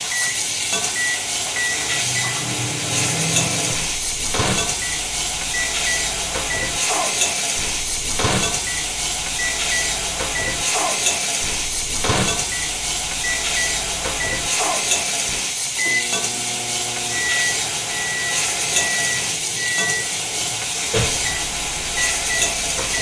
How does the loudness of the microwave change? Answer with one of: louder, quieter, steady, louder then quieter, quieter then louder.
steady.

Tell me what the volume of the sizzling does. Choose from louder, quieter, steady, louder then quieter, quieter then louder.
steady.